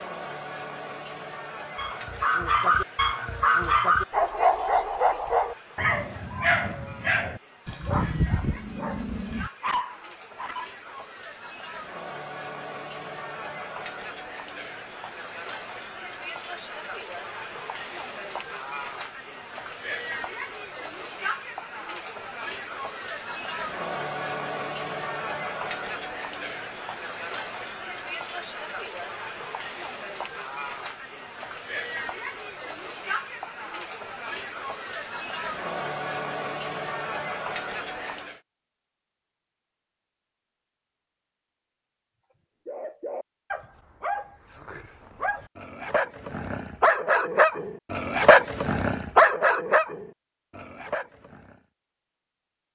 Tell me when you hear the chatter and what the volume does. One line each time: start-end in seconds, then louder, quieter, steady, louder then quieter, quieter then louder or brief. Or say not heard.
0.0-38.4 louder.